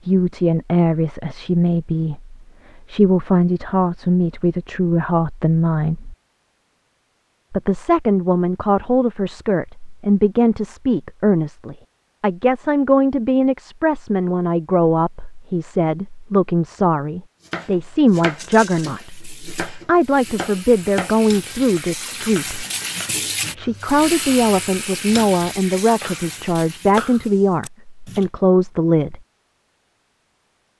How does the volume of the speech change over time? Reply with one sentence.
The loudness of the speech stays about the same.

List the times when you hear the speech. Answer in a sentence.
The speech can be heard from 0.1 to 6.2 s, from 7.5 to 22.6 s and from 23.6 to 29.2 s.